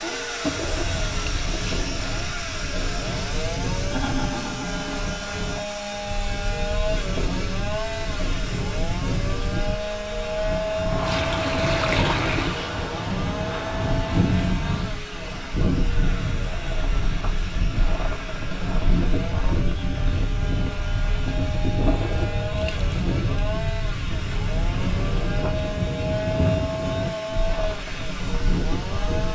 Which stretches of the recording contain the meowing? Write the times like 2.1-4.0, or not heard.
not heard.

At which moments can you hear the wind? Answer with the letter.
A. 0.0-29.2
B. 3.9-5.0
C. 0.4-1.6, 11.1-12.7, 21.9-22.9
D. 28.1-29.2
A.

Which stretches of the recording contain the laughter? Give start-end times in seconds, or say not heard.
3.9-5.0.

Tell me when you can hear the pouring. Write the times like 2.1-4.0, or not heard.
0.4-1.6, 11.1-12.7, 21.9-22.9.